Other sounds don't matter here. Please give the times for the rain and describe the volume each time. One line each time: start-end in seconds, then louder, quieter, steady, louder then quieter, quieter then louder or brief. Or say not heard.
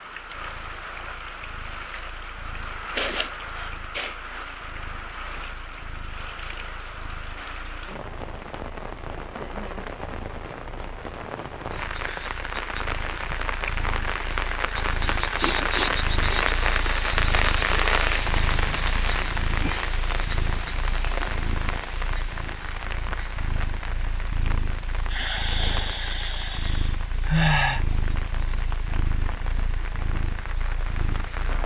0.0-31.6 louder then quieter.